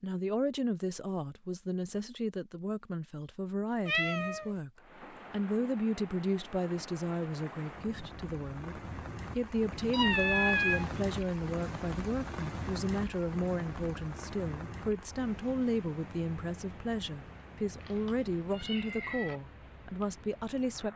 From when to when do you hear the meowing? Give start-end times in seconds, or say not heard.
3.9-4.5, 9.9-11.0, 17.8-19.4.